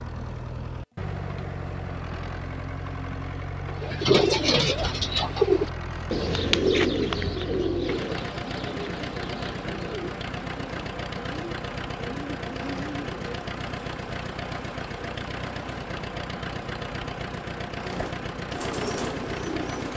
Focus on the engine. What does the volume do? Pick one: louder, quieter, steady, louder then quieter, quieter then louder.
steady.